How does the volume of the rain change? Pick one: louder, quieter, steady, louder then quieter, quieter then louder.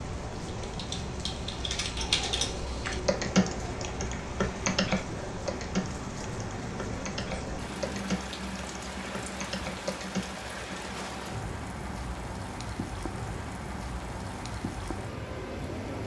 steady.